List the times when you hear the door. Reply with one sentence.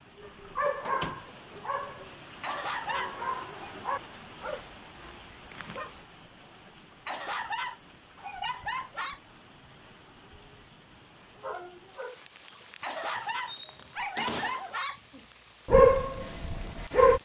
You can hear the door from 0.8 to 1.2 s and from 13.2 to 14.8 s.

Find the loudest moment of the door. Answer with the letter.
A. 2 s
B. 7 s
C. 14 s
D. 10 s
C.